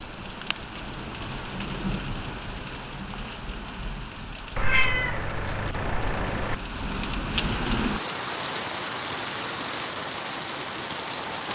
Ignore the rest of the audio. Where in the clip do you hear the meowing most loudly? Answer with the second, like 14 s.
5 s.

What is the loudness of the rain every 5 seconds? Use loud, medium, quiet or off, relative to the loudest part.
medium, loud, loud.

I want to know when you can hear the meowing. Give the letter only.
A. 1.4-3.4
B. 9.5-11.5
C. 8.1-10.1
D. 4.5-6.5
D.